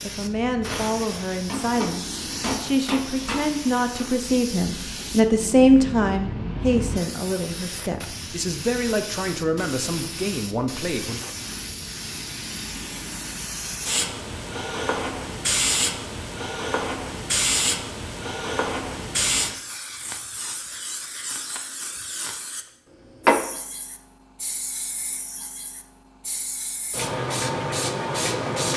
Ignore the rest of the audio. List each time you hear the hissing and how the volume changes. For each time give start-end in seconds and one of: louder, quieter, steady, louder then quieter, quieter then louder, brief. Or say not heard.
0.0-28.7 louder.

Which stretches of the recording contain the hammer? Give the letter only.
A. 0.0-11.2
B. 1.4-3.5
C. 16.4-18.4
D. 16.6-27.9
B.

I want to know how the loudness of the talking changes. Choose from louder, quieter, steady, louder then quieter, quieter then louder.
louder then quieter.